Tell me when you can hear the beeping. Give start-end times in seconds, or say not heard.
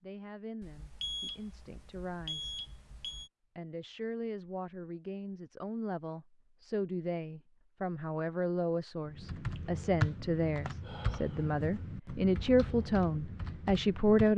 0.6-3.3.